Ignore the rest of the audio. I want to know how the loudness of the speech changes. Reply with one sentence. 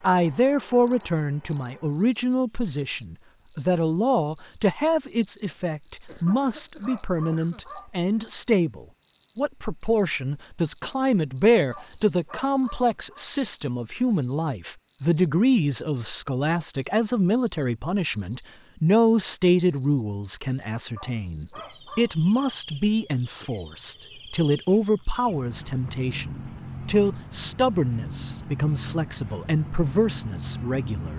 The loudness of the speech stays about the same.